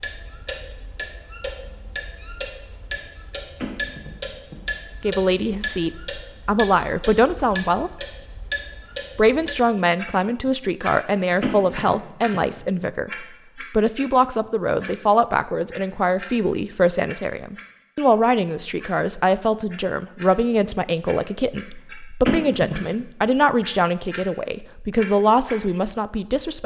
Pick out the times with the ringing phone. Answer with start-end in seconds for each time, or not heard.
3.6-4.5, 11.4-12.4, 22.2-22.8.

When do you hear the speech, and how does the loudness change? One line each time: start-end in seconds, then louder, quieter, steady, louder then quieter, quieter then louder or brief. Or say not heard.
5.0-7.9 brief
9.2-26.6 steady.